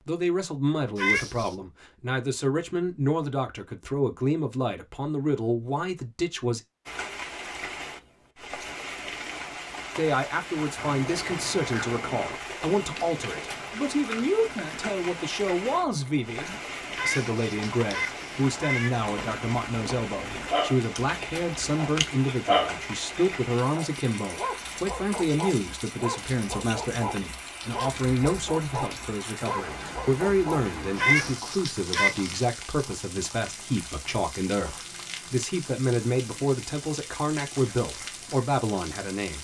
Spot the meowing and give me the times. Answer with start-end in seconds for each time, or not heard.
0.9-1.6, 16.9-18.9, 30.9-32.5.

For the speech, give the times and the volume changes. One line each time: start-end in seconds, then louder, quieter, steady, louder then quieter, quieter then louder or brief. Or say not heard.
0.0-6.6 steady
9.9-39.4 steady.